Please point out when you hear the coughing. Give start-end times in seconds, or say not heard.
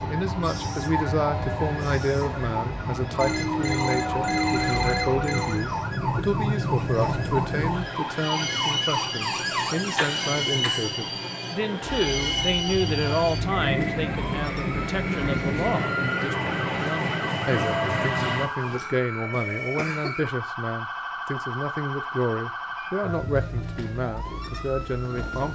9.3-10.9, 19.3-20.2.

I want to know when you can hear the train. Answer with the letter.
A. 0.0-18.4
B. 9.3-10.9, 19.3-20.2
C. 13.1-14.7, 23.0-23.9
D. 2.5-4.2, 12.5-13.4
A.